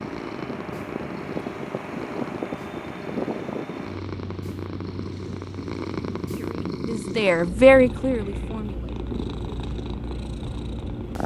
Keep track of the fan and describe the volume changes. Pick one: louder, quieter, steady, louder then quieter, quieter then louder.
quieter.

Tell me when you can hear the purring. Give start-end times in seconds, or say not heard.
0.0-11.2.